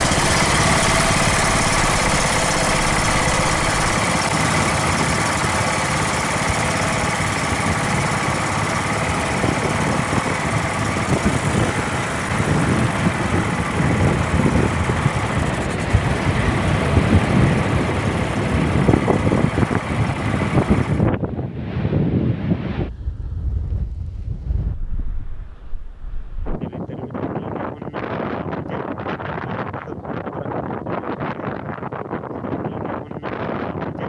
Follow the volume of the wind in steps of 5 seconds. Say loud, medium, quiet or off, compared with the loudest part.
medium, medium, loud, loud, loud, medium, medium.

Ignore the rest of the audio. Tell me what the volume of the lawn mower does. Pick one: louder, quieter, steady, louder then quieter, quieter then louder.
quieter.